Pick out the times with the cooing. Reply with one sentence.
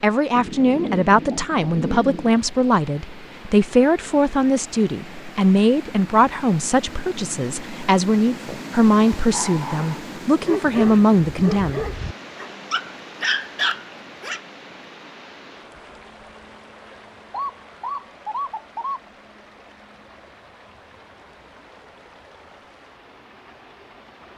You can hear the cooing from 0.3 to 2.4 s and from 17.3 to 19.0 s.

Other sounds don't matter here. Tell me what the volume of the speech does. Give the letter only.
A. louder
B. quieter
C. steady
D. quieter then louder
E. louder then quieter
C.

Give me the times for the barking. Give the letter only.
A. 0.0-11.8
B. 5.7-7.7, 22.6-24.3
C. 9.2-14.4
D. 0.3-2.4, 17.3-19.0
C.